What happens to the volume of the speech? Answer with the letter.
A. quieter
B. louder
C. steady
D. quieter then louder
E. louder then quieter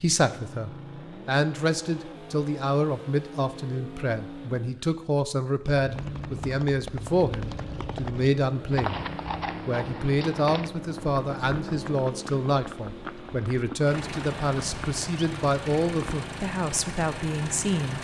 C.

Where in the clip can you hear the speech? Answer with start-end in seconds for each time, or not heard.
0.0-9.0, 9.7-17.9.